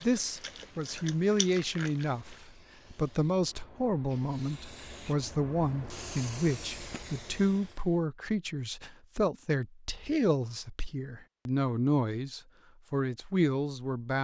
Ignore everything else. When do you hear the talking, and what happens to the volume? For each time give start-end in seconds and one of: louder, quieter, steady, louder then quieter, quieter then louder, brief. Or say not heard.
0.0-14.1 steady.